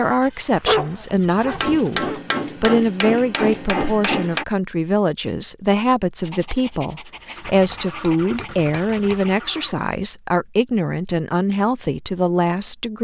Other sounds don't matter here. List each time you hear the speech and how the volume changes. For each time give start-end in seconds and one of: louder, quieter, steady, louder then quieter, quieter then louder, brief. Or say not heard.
0.0-12.9 steady.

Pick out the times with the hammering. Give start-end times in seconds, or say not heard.
1.6-4.5, 7.7-9.2.